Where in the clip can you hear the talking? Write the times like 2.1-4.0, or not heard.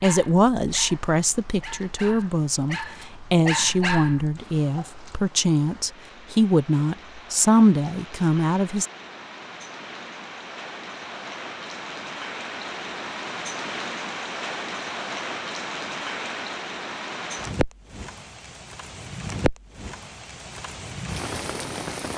0.0-8.8.